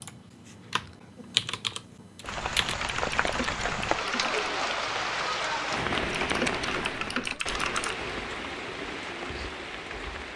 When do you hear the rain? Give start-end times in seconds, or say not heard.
2.2-10.3.